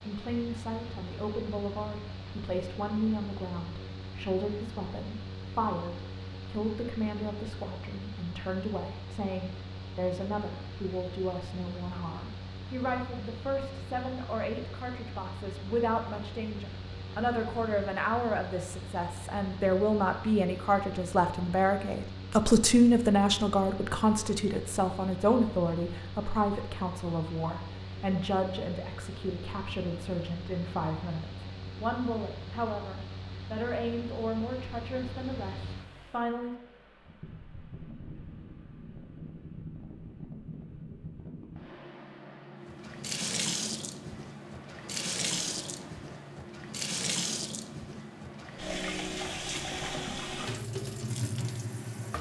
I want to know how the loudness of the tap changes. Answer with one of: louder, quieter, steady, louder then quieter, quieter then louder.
steady.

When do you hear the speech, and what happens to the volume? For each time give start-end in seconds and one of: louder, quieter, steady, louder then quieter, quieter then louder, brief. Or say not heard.
0.1-36.5 louder then quieter.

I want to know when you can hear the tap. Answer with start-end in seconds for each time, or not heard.
42.6-52.1.